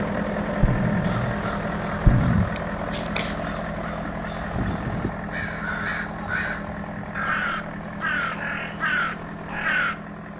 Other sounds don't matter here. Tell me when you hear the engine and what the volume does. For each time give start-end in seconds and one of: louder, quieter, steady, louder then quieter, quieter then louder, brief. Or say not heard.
0.0-10.3 quieter.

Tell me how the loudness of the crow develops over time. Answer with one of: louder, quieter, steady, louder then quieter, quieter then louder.
louder.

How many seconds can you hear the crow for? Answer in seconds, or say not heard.
9 s.